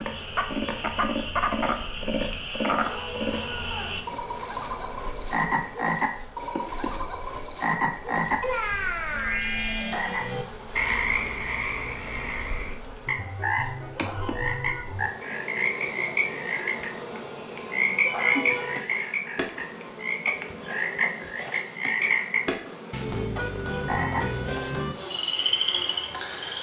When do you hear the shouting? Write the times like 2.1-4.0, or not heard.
2.8-4.0, 13.9-14.8, 18.1-18.9.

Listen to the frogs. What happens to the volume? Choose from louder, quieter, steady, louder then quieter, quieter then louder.
steady.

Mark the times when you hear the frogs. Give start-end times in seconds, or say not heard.
0.0-26.5.